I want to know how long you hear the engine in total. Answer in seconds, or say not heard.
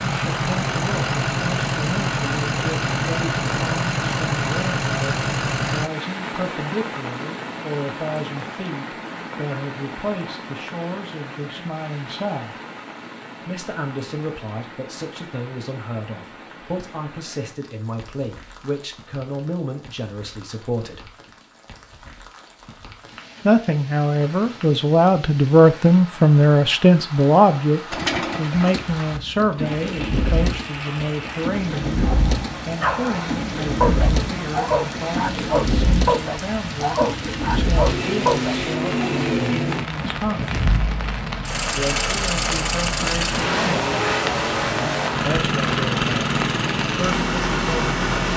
26 s.